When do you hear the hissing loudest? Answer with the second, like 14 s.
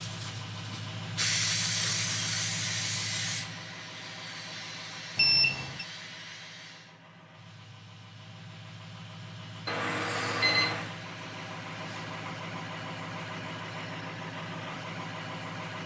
2 s.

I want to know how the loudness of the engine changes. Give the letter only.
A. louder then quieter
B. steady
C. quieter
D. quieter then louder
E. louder
D.